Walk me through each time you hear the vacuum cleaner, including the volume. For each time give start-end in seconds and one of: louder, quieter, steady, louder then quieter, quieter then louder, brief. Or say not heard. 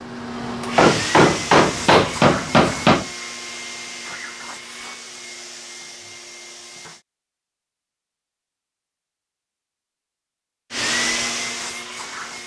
0.0-7.0 quieter
10.7-12.4 brief.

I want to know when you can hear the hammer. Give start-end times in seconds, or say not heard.
0.8-3.0.